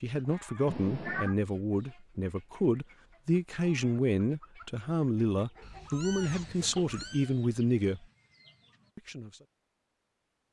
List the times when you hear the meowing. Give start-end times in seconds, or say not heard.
0.7-1.4, 5.6-7.3.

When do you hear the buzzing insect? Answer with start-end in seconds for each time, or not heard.
not heard.